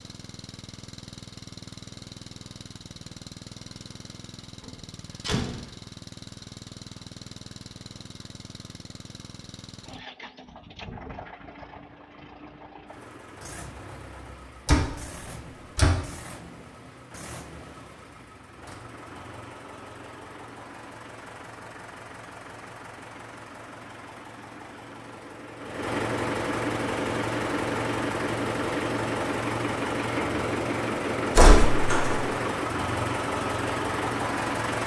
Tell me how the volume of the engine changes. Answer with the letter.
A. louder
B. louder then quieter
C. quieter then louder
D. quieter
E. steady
A.